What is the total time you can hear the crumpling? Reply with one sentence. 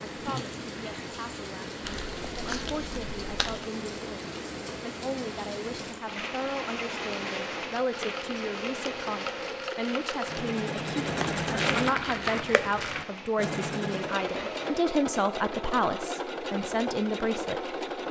The crumpling can be heard for 4 seconds in total.